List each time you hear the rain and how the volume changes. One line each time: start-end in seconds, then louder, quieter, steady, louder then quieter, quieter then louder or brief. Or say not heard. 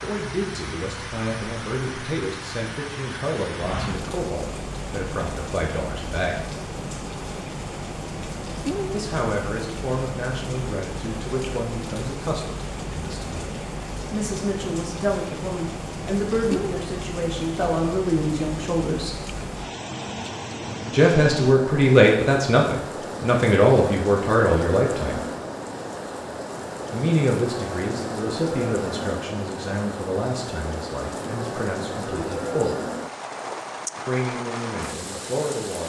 0.0-35.8 steady.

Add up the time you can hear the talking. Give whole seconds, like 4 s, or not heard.
29 s.